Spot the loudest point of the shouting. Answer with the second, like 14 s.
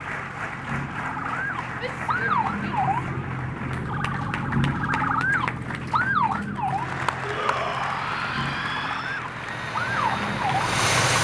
8 s.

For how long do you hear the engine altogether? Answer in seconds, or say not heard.
2 s.